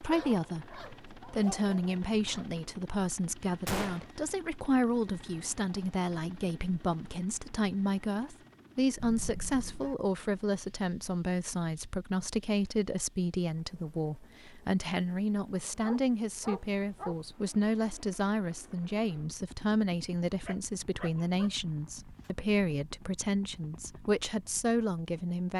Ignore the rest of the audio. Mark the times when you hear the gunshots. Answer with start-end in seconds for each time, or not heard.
3.6-4.1.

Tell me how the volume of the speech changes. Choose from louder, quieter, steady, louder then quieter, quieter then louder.
steady.